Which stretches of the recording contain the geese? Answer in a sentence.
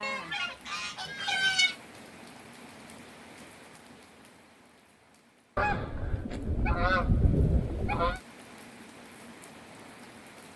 The geese can be heard from 0.0 to 1.8 s and from 5.5 to 8.2 s.